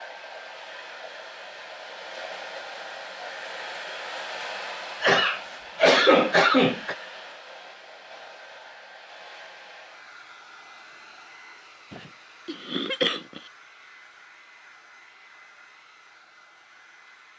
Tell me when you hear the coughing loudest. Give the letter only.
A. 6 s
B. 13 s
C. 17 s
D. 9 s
A.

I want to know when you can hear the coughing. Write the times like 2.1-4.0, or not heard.
5.0-7.0, 11.9-13.5.